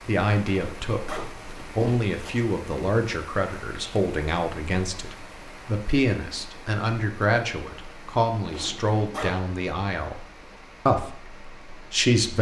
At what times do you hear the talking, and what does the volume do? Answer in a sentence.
The talking can be heard from 0.1 to 10.2 s, at a steady volume; and briefly from 10.8 to 12.3 s.